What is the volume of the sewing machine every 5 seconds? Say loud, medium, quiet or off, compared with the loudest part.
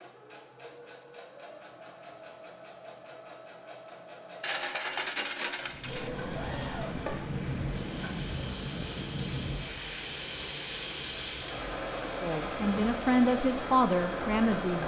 quiet, medium, loud.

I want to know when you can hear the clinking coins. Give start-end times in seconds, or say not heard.
4.4-6.1.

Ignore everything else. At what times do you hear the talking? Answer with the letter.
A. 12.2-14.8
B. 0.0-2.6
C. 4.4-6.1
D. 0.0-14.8
A.